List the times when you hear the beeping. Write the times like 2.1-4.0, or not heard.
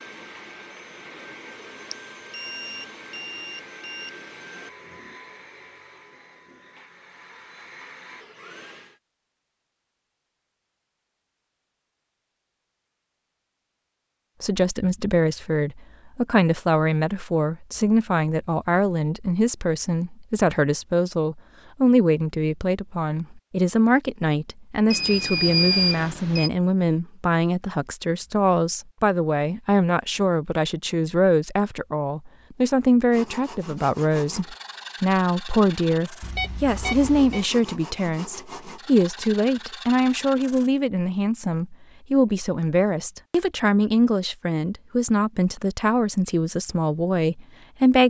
1.9-4.1, 24.9-26.5, 36.2-37.5.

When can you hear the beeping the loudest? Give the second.
26 s.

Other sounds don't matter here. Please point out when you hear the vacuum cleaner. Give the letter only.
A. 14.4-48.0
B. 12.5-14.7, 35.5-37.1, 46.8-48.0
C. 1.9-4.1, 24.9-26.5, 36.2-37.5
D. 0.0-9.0
D.